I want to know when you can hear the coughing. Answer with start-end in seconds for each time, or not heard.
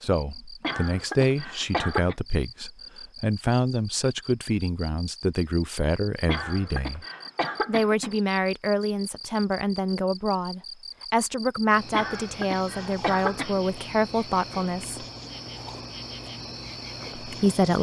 0.6-2.1, 6.2-8.2, 11.9-13.6.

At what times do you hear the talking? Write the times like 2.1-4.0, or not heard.
0.0-7.0, 7.7-15.0, 17.2-17.7.